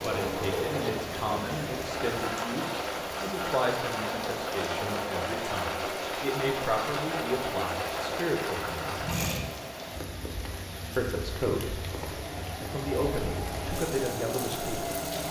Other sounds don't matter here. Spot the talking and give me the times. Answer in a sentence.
You can hear the talking from 0.0 to 9.0 s, from 10.9 to 11.9 s and from 12.6 to 15.0 s.